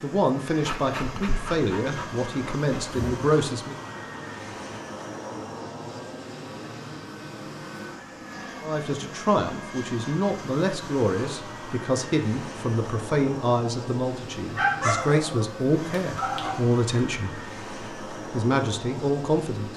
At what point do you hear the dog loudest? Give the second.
15 s.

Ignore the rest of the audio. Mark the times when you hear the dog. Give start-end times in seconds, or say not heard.
0.6-3.1, 14.6-16.6.